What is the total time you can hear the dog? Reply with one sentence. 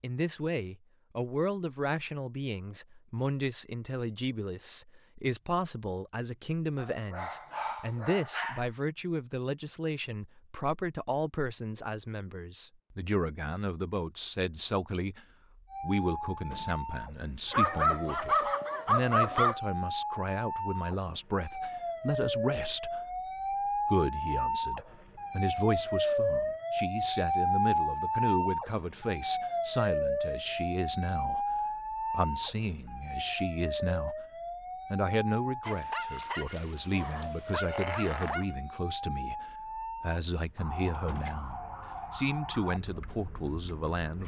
You can hear the dog for 7 seconds altogether.